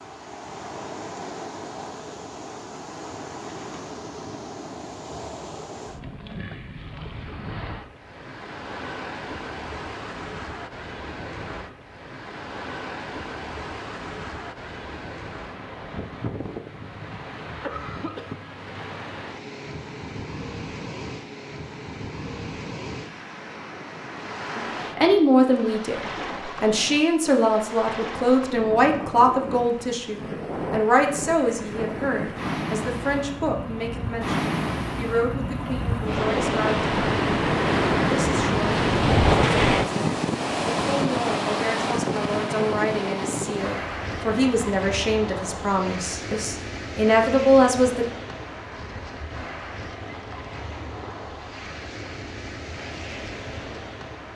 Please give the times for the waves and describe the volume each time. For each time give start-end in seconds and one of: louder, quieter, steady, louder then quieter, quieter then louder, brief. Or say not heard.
0.0-54.3 louder then quieter.